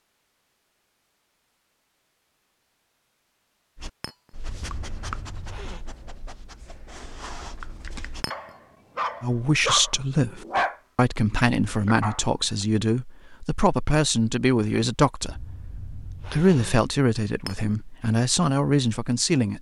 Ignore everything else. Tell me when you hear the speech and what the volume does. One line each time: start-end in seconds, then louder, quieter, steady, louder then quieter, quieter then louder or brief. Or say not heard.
9.2-19.5 steady.